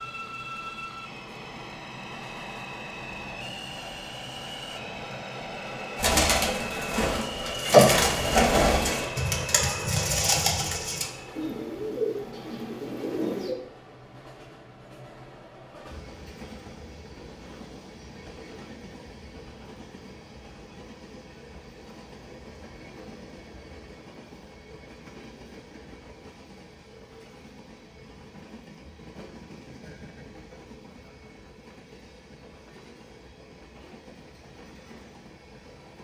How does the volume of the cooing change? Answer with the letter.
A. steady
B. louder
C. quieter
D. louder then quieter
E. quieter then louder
D.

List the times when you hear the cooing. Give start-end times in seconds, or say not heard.
6.0-13.6.